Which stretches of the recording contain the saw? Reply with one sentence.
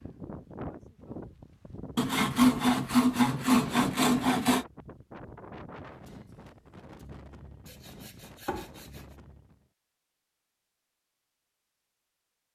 You can hear the saw from 1.9 to 4.7 s and from 7.7 to 9.0 s.